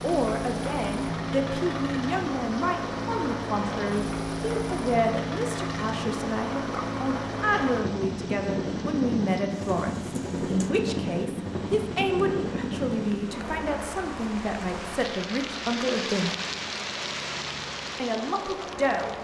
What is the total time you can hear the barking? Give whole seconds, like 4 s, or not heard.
not heard.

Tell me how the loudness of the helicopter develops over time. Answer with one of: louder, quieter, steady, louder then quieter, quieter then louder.
quieter.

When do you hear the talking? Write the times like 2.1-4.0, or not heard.
0.0-16.3, 17.9-19.1.